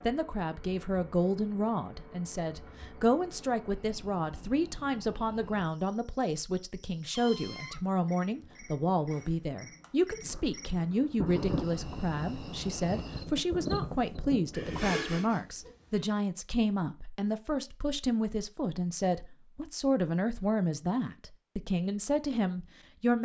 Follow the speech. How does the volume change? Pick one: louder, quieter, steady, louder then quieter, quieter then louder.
steady.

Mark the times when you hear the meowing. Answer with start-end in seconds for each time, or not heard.
7.1-7.8, 14.5-16.0.